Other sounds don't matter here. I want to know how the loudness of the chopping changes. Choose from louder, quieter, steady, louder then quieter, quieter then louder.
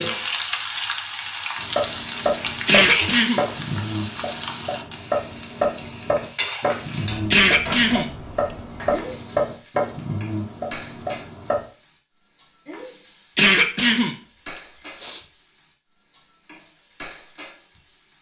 steady.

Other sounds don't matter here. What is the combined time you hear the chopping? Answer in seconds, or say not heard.
10 s.